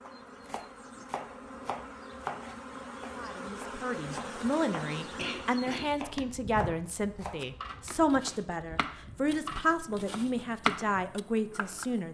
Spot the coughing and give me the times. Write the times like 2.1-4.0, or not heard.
5.2-5.9.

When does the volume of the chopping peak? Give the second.
11 s.